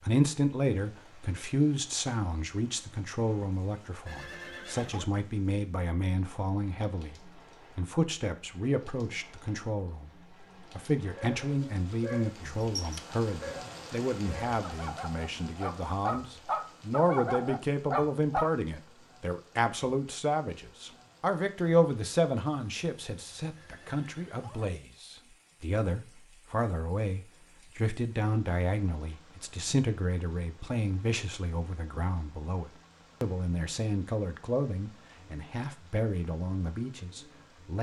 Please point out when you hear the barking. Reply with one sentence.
You can hear the barking from 11.2 to 18.5 s.